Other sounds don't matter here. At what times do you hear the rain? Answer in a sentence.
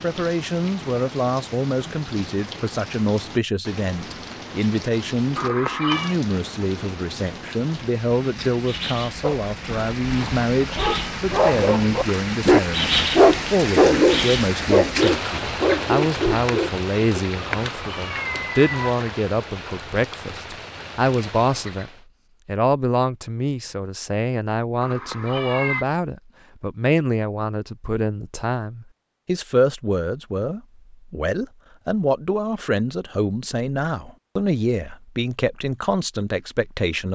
You can hear the rain from 0.0 to 22.1 s.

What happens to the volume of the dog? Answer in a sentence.
The volume of the dog goes up, then down.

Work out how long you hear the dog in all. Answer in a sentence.
You can hear the dog for 8 seconds altogether.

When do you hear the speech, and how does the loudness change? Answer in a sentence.
The speech can be heard from 0.0 to 37.1 s, at a steady volume.